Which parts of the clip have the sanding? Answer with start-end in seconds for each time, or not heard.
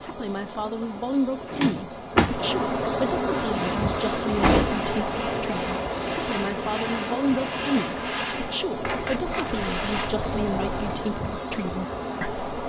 3.5-10.2.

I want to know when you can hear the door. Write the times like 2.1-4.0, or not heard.
1.5-2.5, 4.4-4.9, 8.8-11.1.